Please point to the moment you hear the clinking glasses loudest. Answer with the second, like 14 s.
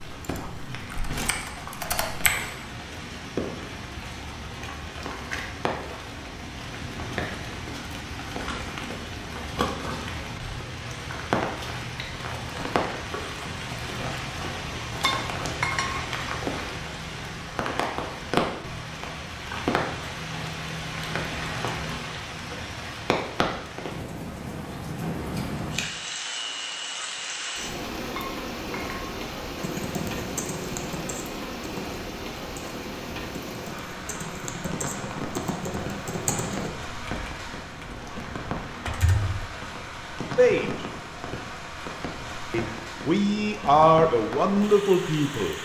16 s.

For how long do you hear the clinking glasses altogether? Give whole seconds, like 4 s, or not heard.
2 s.